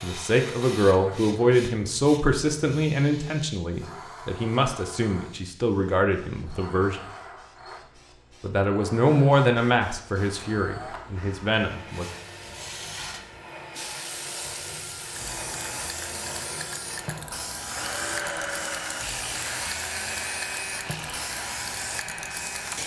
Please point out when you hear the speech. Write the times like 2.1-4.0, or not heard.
0.0-7.0, 8.4-12.1.